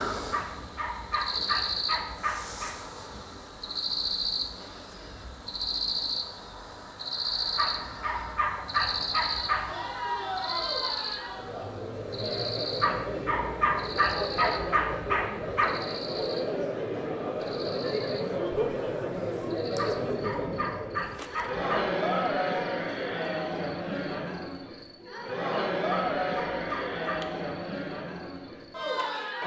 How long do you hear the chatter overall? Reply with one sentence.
The chatter can be heard for 20 seconds in total.